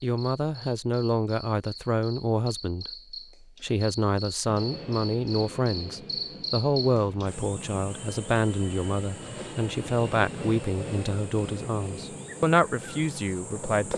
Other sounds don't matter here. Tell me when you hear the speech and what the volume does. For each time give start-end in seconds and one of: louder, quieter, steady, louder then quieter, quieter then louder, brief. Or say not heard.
0.0-13.9 steady.